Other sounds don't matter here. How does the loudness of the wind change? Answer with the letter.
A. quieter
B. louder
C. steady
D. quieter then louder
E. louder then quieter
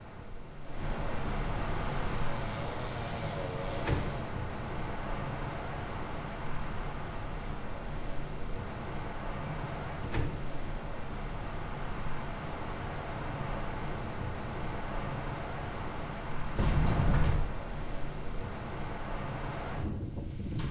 C.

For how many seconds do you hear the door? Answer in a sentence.
The door can be heard for 3 seconds in total.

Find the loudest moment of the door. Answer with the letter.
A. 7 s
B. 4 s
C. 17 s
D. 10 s
C.